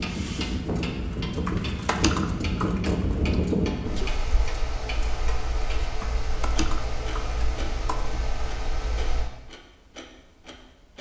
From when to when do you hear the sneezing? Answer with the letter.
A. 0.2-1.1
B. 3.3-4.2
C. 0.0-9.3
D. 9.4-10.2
B.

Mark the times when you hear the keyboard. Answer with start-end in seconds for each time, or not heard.
1.4-3.1, 6.0-8.3.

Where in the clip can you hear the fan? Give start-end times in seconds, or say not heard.
0.0-9.3.